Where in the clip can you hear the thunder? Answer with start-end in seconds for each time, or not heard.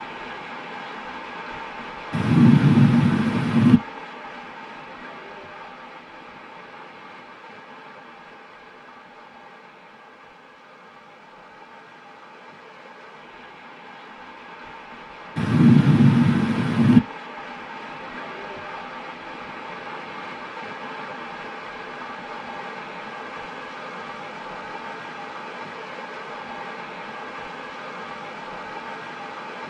2.1-3.8, 15.3-17.0.